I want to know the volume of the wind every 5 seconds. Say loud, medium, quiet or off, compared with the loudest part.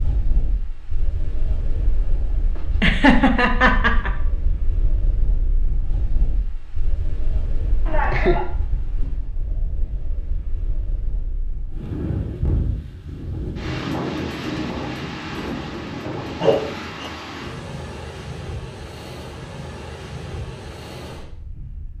medium, medium, loud, loud, medium.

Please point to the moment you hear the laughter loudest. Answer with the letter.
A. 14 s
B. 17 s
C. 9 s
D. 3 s
D.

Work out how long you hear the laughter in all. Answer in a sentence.
The laughter can be heard for 3 seconds in total.